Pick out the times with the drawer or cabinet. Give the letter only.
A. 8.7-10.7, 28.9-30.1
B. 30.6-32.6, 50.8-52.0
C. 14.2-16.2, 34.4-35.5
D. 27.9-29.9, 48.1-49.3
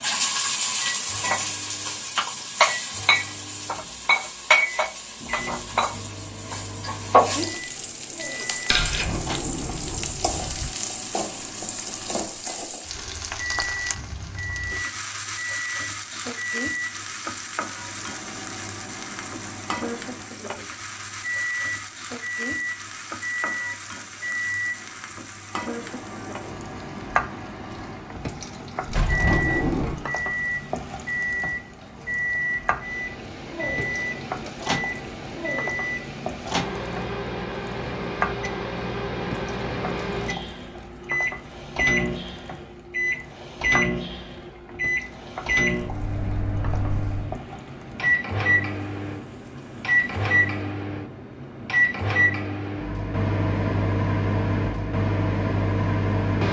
A.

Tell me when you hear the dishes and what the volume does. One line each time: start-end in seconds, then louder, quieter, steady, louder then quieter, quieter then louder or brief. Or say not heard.
not heard.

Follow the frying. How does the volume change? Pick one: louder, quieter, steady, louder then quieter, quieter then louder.
quieter.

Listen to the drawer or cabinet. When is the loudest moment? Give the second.
29 s.